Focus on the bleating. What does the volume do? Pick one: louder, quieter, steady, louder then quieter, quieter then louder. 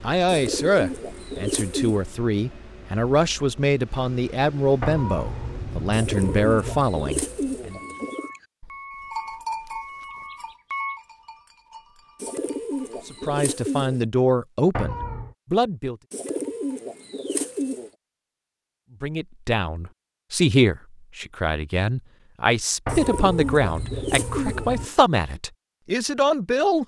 quieter.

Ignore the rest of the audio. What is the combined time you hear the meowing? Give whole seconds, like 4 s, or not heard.
5 s.